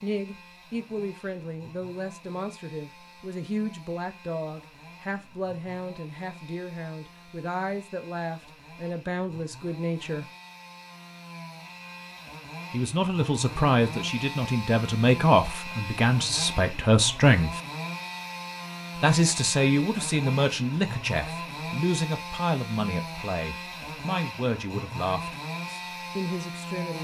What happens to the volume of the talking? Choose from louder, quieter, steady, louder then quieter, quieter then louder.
louder then quieter.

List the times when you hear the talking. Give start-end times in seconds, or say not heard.
0.0-10.3, 12.7-17.6, 19.0-27.0.